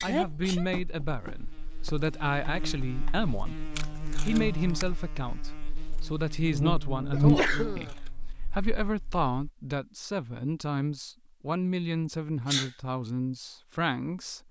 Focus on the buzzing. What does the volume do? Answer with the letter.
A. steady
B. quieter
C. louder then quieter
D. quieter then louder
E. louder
C.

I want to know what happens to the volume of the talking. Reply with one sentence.
The volume of the talking stays about the same.